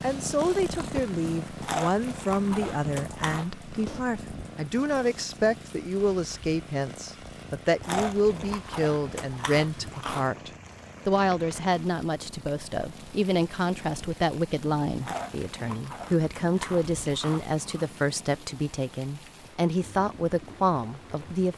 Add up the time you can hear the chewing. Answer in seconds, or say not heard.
7 s.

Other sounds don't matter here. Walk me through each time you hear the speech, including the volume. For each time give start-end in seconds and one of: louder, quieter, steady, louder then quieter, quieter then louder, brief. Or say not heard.
0.0-21.5 steady.